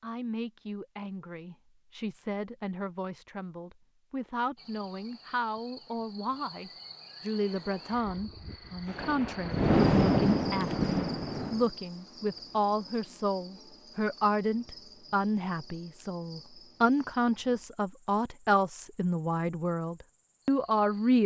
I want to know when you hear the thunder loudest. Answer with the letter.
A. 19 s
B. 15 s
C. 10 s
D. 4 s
C.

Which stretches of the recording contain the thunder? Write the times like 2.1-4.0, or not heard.
8.8-11.7.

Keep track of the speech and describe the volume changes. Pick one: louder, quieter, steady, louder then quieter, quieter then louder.
louder.